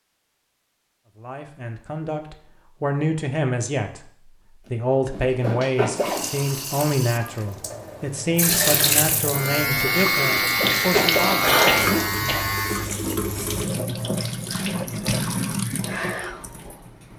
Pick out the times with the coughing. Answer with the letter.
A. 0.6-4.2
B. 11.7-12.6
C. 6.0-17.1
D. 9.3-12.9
B.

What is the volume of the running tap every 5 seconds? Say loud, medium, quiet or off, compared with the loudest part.
off, loud, loud, loud.